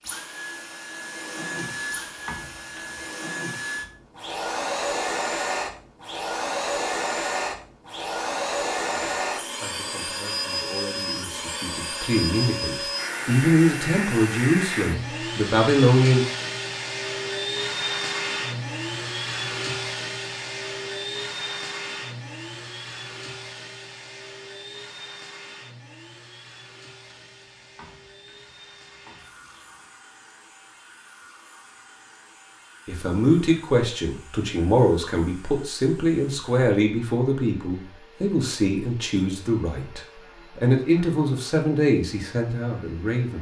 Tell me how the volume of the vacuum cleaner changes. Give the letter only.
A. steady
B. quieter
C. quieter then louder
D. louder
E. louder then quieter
B.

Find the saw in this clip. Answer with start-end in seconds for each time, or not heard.
not heard.